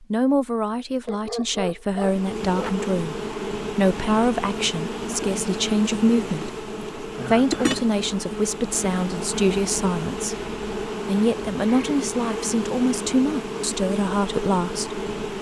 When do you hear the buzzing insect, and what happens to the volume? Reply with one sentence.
You can hear the buzzing insect from 1.9 to 15.3 s, at a steady volume.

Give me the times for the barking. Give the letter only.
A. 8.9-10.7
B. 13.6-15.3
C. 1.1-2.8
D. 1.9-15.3
C.